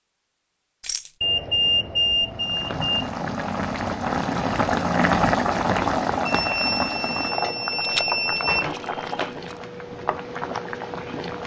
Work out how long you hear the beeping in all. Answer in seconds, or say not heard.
4 s.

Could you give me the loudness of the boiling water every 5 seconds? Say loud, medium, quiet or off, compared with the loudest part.
loud, loud, medium.